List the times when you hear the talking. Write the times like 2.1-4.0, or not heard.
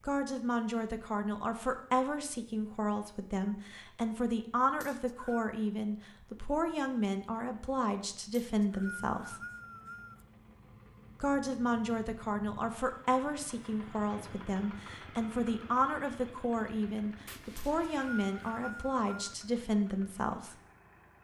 0.1-9.4, 11.2-20.6.